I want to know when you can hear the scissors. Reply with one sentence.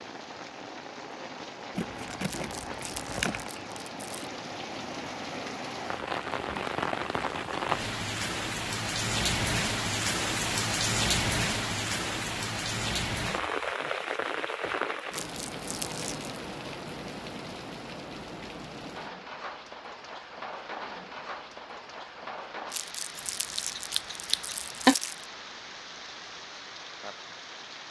The scissors can be heard from 1.8 to 3.5 s and from 23.1 to 24.9 s.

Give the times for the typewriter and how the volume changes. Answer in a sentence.
The typewriter can't be heard in this clip.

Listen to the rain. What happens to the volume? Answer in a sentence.
The volume of the rain goes up, then down.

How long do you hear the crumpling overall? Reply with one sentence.
The crumpling can be heard for 6 seconds in total.